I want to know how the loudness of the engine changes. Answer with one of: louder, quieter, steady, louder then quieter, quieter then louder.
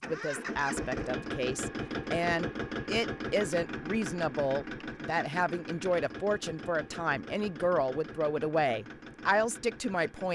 quieter.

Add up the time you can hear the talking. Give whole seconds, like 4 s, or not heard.
10 s.